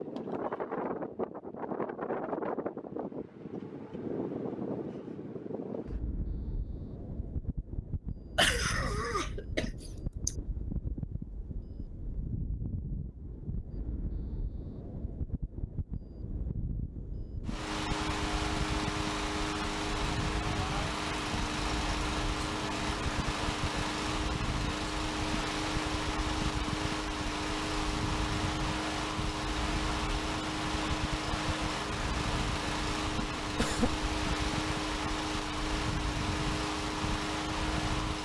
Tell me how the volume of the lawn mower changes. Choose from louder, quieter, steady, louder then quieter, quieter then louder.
steady.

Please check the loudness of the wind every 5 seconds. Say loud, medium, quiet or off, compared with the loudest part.
loud, medium, medium, medium, medium, medium, medium, medium.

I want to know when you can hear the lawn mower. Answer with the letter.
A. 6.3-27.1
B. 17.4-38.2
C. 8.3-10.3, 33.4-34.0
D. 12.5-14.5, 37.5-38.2
B.